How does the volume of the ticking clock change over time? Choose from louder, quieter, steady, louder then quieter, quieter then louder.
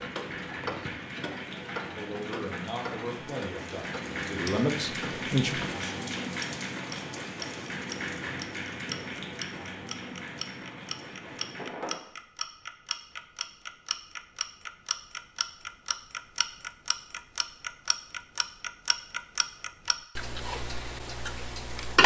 louder.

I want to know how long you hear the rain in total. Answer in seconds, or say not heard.
12 s.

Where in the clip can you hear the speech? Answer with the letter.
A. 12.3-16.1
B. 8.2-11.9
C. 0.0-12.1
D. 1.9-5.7
D.